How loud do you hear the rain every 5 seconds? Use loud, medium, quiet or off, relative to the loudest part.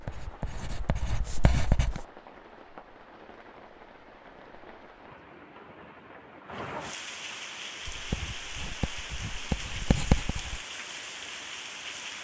medium, loud, loud.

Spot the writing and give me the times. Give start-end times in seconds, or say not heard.
0.0-2.0, 7.8-10.7.